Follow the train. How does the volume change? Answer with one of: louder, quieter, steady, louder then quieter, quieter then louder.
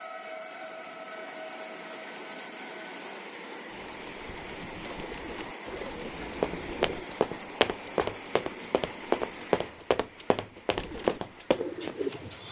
quieter.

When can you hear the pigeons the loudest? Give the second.
12 s.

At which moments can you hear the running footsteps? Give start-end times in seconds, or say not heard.
6.3-11.9.